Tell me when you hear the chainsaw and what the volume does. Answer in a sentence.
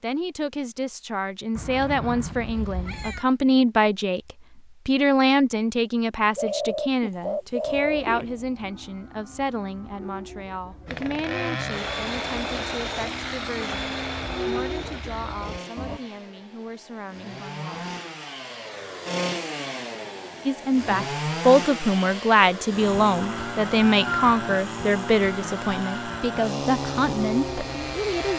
The chainsaw can be heard from 10.8 to 28.3 s, getting quieter then louder.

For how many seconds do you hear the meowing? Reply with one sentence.
You can hear the meowing for 2 seconds altogether.